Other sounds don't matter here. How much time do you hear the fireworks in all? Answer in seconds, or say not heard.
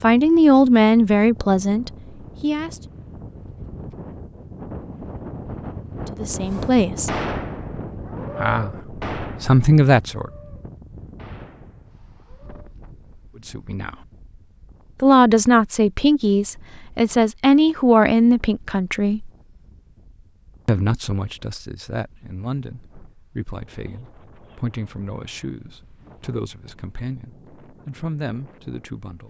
6 s.